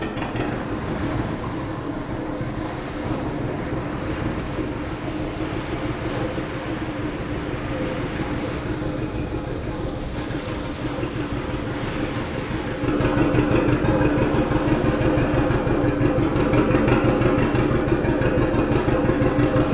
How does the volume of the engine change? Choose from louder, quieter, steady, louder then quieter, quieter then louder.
louder.